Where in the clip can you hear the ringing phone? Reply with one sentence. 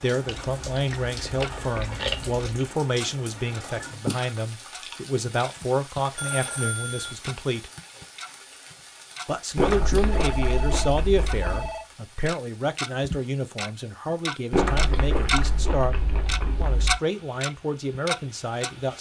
The ringing phone can be heard from 6.2 to 7.2 s and from 10.1 to 11.8 s.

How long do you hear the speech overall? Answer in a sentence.
The speech can be heard for 17 seconds in total.